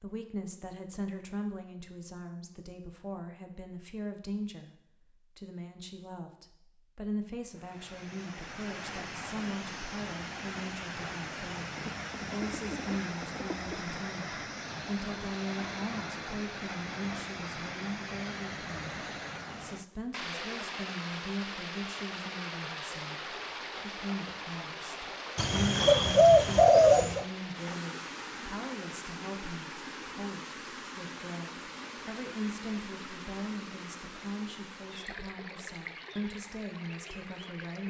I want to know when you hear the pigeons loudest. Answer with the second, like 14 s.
27 s.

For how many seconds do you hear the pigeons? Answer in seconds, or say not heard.
4 s.